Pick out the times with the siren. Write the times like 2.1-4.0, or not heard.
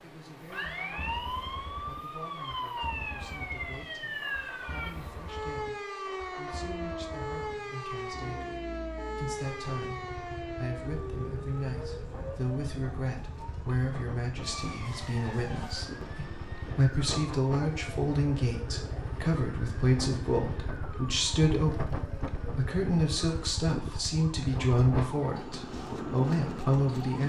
0.0-27.2.